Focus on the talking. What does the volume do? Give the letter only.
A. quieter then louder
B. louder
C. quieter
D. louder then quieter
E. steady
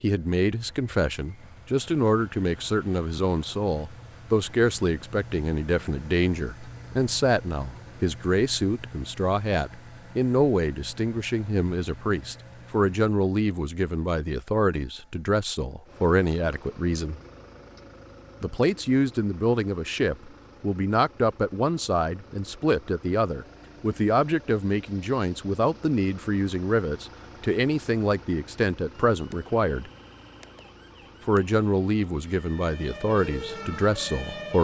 E.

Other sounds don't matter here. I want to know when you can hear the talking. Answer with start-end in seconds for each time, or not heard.
0.0-17.2, 18.4-29.9, 31.2-34.5.